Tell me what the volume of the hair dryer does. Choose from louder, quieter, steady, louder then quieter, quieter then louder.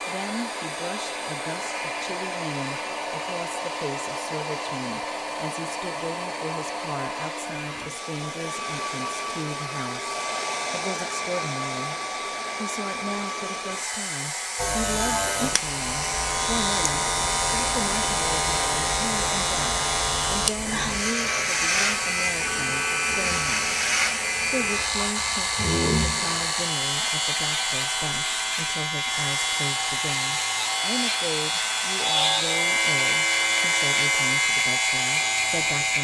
steady.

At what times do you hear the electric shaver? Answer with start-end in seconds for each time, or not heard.
14.6-35.9.